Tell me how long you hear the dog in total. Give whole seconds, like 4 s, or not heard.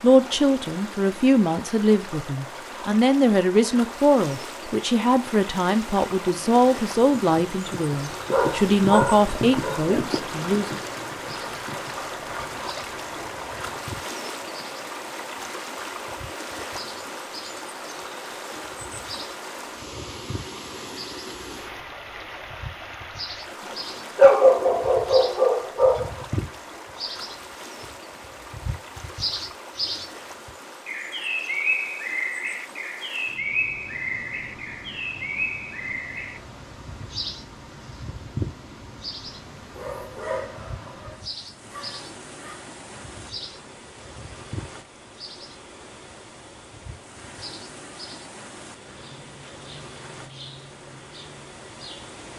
7 s.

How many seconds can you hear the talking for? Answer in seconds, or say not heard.
11 s.